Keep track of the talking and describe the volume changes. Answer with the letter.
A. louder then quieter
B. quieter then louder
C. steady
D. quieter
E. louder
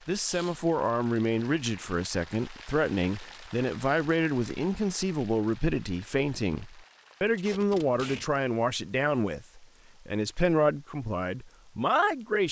C.